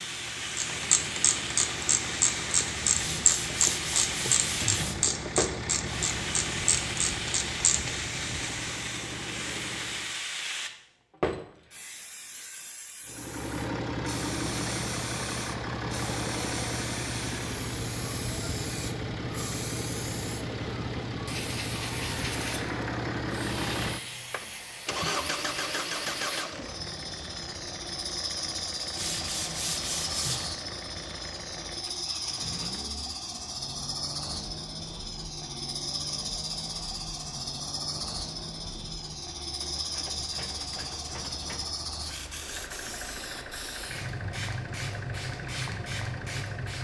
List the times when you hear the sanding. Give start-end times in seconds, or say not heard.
3.0-5.0, 28.9-30.5.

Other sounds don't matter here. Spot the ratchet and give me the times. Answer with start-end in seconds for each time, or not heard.
0.6-8.0.